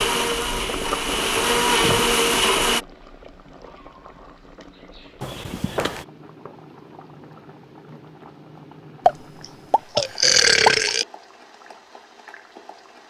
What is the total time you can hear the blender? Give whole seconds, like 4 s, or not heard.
3 s.